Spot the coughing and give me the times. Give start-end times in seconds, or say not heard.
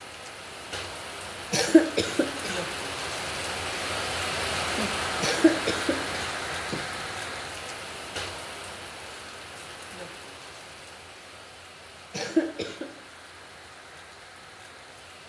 1.5-2.6, 5.2-6.8, 12.1-12.8.